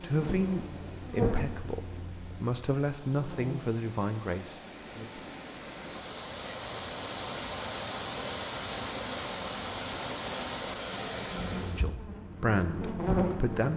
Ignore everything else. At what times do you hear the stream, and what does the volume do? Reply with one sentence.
You can hear the stream from 0.0 to 11.9 s, getting louder.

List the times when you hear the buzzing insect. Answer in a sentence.
You can hear the buzzing insect from 0.0 to 3.6 s and from 11.3 to 13.7 s.